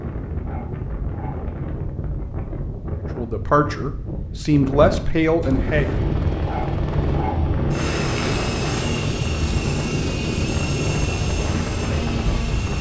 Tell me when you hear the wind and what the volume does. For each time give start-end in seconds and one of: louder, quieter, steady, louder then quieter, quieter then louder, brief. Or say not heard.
0.0-12.7 louder.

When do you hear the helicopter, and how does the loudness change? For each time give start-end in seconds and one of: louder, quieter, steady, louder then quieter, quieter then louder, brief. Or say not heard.
5.5-12.7 steady.